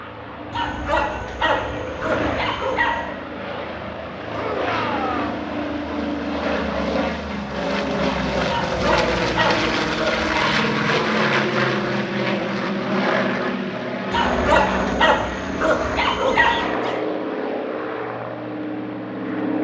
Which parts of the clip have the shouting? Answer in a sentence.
You can hear the shouting from 4.3 to 5.4 s and from 16.2 to 17.1 s.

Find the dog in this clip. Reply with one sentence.
The dog can be heard from 0.5 to 3.0 s, from 8.4 to 10.3 s and from 14.1 to 16.6 s.